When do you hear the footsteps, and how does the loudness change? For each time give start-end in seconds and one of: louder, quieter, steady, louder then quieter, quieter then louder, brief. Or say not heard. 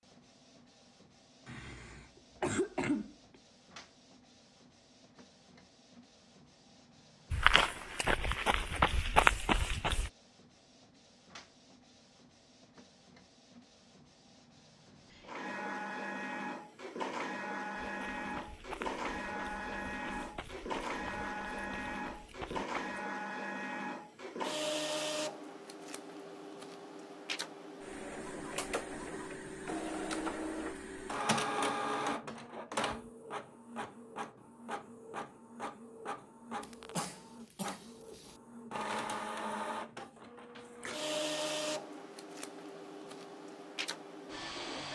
7.3-10.1 brief
17.8-22.9 quieter then louder.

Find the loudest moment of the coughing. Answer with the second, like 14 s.
3 s.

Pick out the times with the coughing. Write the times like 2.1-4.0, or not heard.
1.4-3.1, 36.6-38.4.